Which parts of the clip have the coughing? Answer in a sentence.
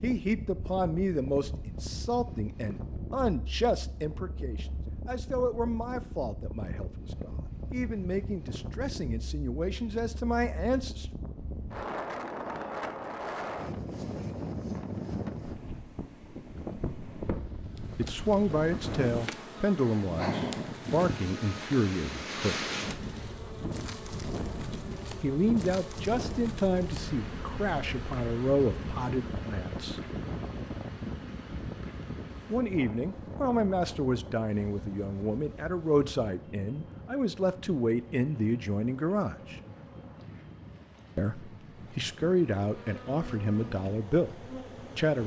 You can't hear the coughing here.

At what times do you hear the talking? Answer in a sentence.
The talking can be heard from 0.0 to 11.1 s, from 17.9 to 22.8 s, from 25.2 to 30.0 s, from 32.5 to 39.5 s and from 41.1 to 45.2 s.